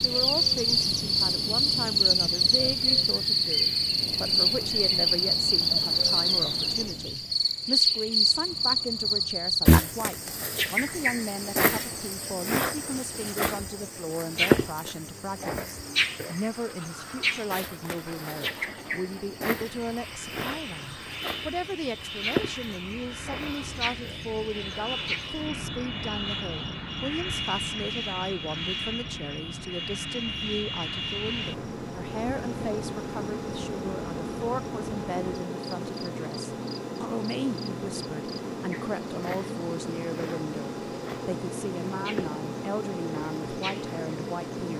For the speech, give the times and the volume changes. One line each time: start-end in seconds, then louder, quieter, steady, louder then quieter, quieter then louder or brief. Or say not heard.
0.0-44.7 steady.